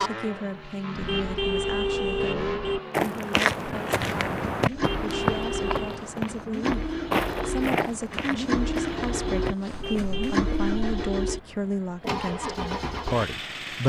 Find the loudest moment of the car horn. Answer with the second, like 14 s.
2 s.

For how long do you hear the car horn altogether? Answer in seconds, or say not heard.
4 s.